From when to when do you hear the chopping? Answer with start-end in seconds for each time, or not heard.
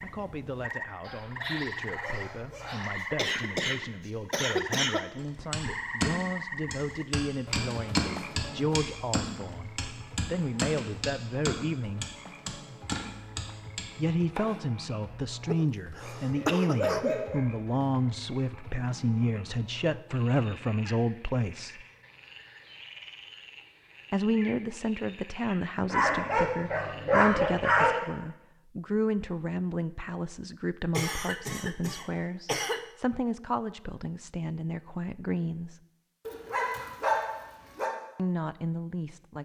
5.3-14.6.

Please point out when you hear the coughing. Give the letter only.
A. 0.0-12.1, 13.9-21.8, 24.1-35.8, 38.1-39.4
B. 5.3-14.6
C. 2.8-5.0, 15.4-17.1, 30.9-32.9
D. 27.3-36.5
C.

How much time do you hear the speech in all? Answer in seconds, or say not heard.
33 s.